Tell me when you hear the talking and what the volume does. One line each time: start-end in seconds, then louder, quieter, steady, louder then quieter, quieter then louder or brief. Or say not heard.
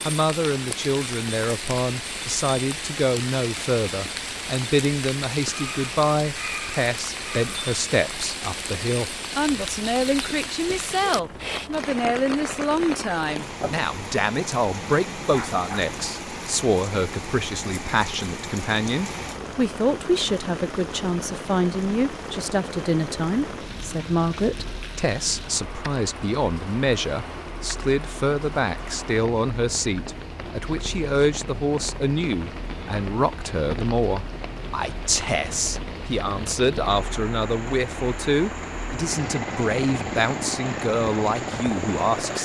0.1-42.4 steady.